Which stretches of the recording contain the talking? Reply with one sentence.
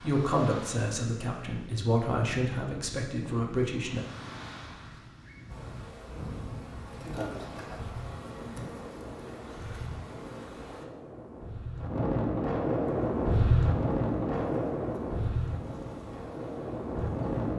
The talking can be heard from 0.0 to 4.0 s.